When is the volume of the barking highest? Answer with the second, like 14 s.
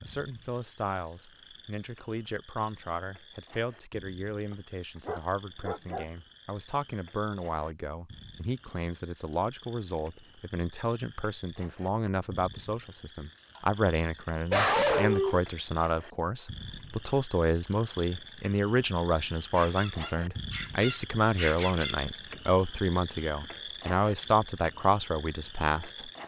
15 s.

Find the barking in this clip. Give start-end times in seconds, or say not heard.
5.0-6.0, 13.6-15.4, 19.6-21.9.